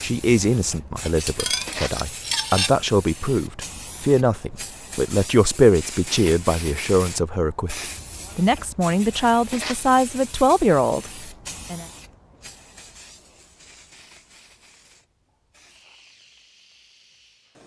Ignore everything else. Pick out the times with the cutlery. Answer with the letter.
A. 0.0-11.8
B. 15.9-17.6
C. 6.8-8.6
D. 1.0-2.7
D.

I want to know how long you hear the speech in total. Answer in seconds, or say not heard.
12 s.